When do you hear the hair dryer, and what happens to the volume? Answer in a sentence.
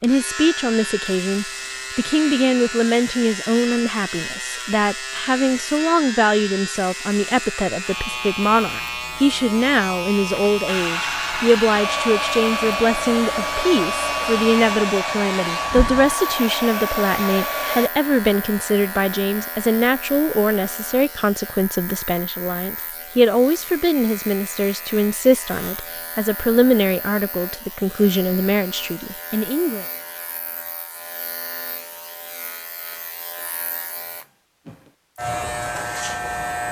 The hair dryer can be heard from 10.7 to 17.9 s, at a steady volume.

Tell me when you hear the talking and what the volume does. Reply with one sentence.
The talking can be heard from 0.0 to 29.9 s, at a steady volume.